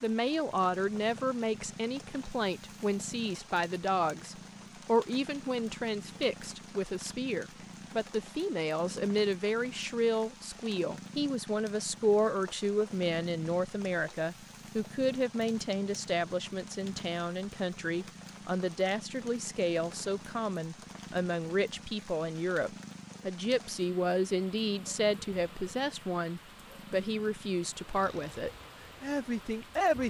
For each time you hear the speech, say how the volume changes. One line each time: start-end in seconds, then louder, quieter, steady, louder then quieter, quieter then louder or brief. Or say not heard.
0.0-30.0 steady.